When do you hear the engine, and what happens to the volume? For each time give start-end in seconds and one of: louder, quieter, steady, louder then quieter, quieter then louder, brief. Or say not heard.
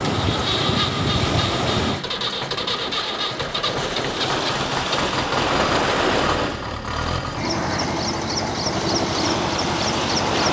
0.0-10.4 steady.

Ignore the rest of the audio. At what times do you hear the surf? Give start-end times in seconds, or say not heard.
0.0-10.4.